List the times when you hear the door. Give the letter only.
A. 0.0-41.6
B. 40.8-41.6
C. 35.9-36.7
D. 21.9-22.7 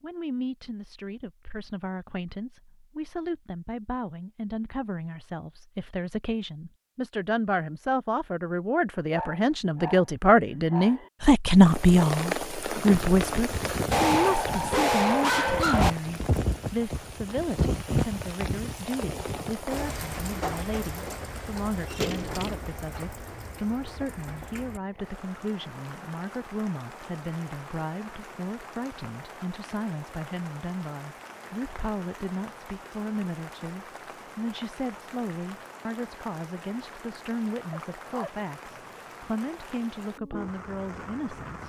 D.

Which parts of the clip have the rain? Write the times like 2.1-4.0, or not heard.
11.5-41.6.